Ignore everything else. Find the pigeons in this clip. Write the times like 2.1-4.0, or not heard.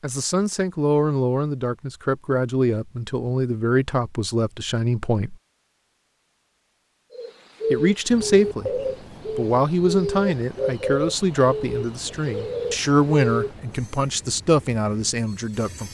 7.1-13.6.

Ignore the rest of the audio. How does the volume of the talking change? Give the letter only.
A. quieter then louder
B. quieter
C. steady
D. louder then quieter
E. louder
C.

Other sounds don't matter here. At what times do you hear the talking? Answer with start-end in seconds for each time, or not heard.
0.0-5.3, 7.7-15.8.